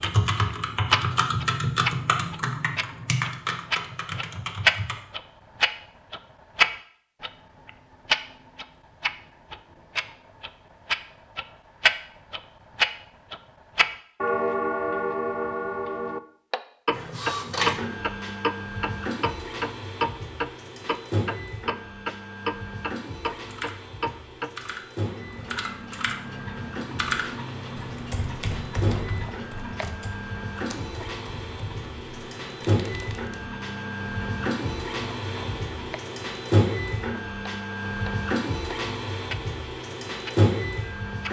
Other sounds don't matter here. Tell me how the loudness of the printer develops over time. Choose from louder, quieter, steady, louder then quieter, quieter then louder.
quieter then louder.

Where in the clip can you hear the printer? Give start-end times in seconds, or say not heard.
16.9-41.2.